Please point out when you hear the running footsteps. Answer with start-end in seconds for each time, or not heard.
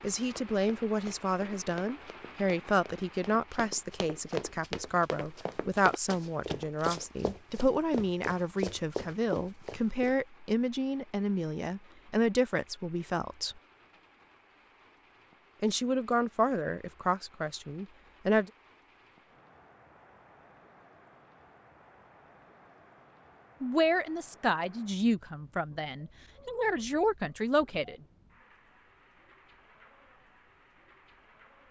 0.3-10.2.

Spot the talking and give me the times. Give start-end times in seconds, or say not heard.
0.0-13.6, 15.6-18.5, 23.6-27.9.